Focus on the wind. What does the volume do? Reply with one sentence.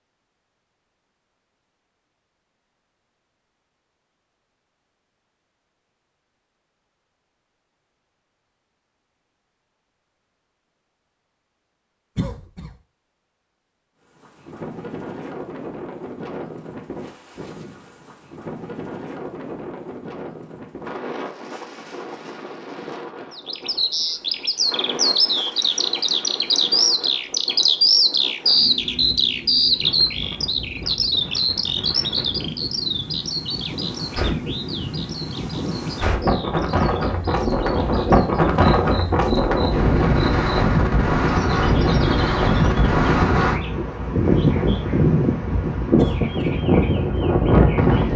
The loudness of the wind goes up.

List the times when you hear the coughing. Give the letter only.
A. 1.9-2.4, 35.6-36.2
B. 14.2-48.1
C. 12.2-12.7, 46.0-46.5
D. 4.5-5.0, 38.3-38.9
C.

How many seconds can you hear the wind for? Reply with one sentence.
You can hear the wind for 34 seconds altogether.